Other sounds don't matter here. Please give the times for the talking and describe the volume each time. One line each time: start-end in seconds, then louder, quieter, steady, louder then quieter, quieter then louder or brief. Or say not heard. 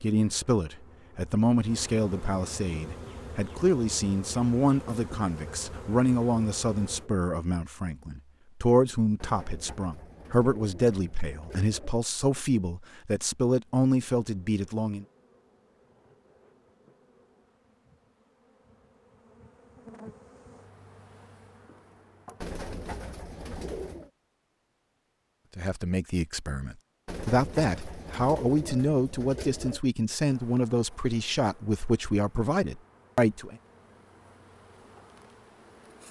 0.0-15.1 steady
25.6-33.5 steady.